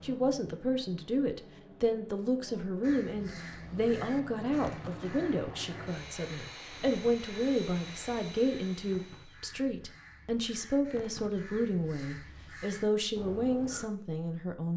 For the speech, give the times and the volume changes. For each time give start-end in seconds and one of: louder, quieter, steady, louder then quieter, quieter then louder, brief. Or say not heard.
0.0-14.7 steady.